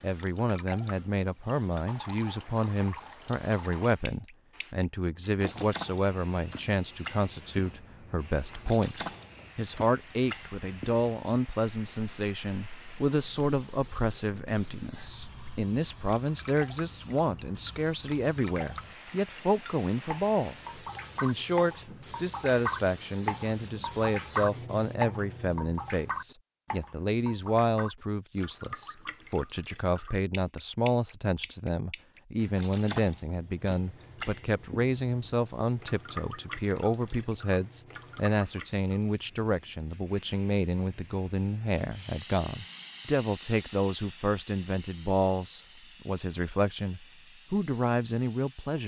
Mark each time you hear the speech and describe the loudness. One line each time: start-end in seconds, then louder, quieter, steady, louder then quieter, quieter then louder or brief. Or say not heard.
0.0-48.8 steady.